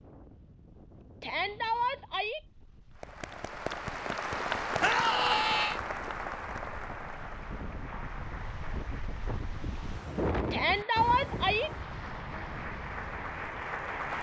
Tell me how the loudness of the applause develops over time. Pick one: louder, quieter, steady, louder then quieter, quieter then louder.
quieter then louder.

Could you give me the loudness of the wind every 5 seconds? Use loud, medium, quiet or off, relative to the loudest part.
quiet, medium, loud.